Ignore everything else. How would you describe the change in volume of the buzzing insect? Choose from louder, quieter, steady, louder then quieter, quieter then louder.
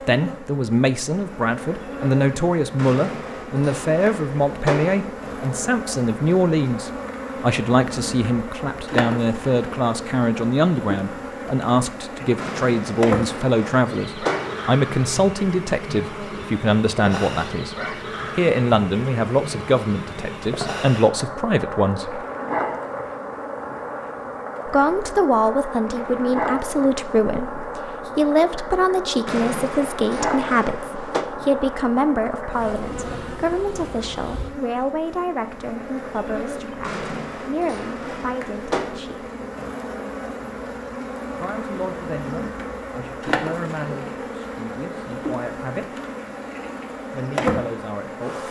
steady.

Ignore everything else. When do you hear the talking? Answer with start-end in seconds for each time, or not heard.
0.1-17.8, 18.4-22.2, 24.6-39.3, 41.3-46.0, 47.1-48.4.